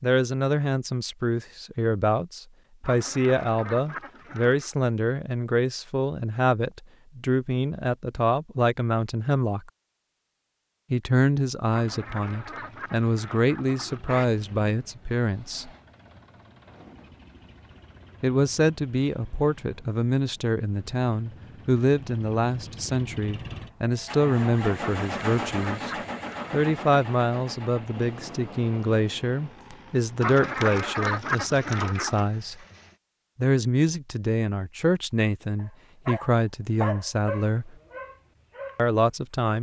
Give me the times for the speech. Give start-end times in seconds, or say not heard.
0.0-9.7, 10.9-15.7, 18.2-25.9, 26.5-32.5, 33.4-37.8, 38.8-39.5.